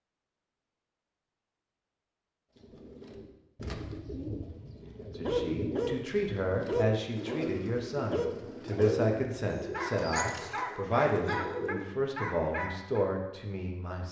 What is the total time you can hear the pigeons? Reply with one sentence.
The pigeons can be heard for 9 seconds in total.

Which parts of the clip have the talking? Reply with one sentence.
The talking can be heard from 5.0 to 14.0 s.